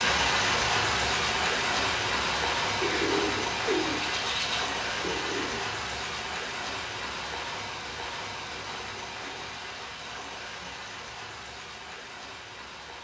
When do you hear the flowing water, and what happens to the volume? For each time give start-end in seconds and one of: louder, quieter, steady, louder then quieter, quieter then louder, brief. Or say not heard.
0.0-12.9 quieter.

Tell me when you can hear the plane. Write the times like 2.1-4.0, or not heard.
not heard.